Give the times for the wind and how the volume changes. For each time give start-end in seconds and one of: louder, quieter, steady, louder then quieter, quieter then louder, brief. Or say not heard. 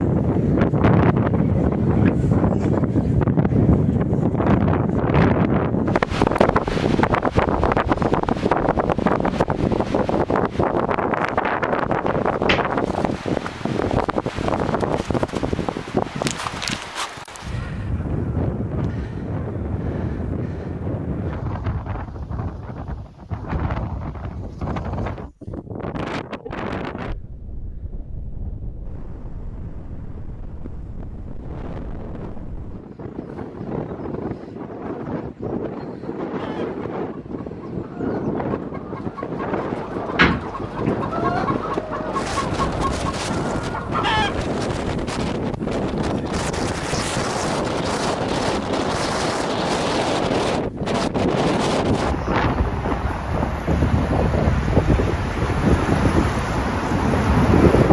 0.0-57.8 quieter then louder.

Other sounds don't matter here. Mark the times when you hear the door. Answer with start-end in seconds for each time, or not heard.
12.1-12.7, 40.1-40.9.